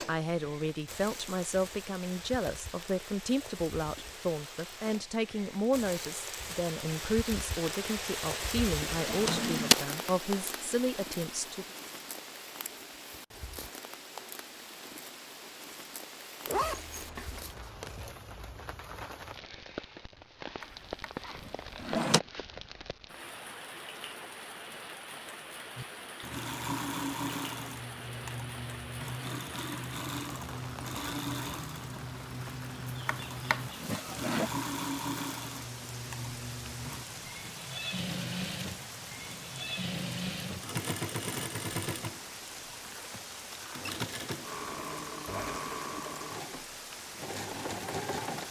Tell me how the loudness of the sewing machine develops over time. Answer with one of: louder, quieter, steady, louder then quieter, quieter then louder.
steady.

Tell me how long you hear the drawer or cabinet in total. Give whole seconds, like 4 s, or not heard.
4 s.